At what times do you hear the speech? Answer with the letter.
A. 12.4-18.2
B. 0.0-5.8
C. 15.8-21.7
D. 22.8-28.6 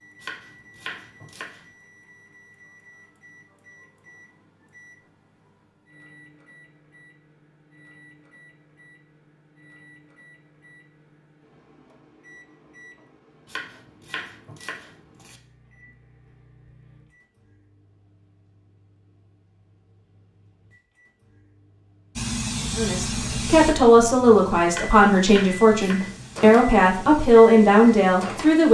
D.